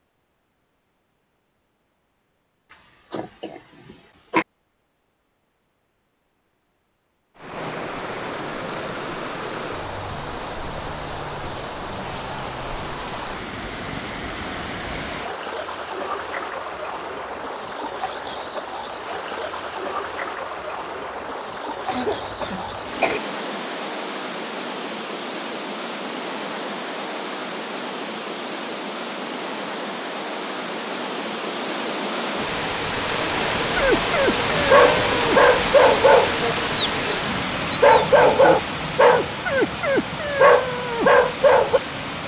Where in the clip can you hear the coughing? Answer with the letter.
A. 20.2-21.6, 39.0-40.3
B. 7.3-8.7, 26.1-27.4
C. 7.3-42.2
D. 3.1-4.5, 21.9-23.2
D.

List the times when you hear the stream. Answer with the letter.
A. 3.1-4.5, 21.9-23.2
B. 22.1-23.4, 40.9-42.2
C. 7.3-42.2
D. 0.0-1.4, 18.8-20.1
C.